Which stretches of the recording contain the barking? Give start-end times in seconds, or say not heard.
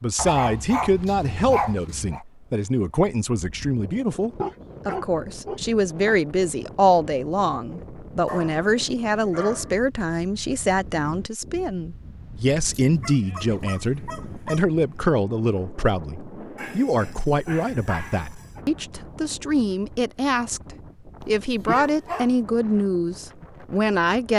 0.1-2.2, 4.3-6.2, 8.2-9.8, 12.8-14.7, 16.6-18.6, 21.2-22.4.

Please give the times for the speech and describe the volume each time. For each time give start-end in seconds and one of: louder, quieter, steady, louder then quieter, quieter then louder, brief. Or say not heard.
0.0-24.3 steady.